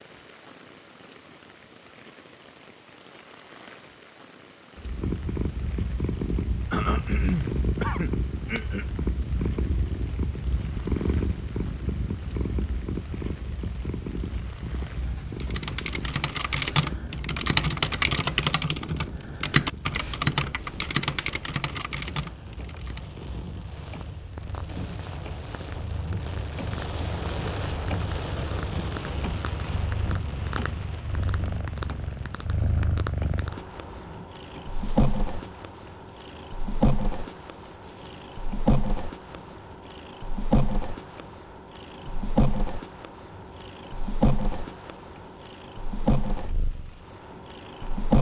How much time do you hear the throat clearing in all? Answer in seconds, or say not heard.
2 s.